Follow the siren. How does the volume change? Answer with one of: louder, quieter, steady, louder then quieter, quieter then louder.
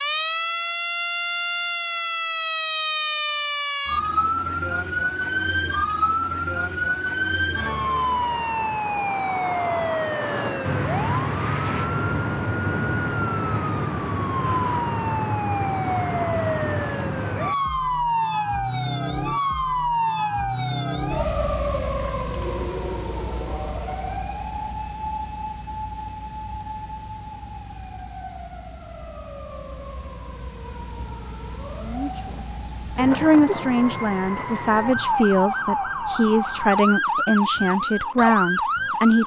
quieter then louder.